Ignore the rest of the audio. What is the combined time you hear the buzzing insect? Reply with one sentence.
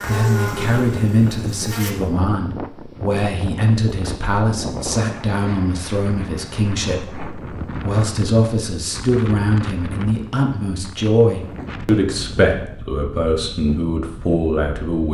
The buzzing insect can be heard for 2 seconds in total.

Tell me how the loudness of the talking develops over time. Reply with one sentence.
The volume of the talking stays about the same.